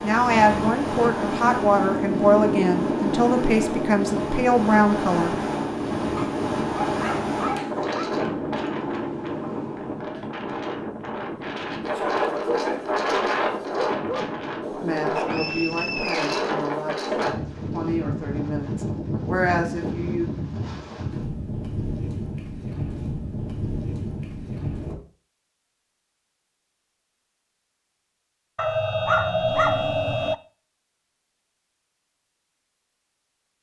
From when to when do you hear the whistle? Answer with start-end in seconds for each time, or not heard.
15.2-16.4.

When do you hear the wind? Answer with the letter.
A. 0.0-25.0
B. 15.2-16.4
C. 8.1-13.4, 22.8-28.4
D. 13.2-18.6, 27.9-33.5
A.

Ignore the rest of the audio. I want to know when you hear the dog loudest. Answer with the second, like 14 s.
30 s.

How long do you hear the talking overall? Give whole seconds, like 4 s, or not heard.
11 s.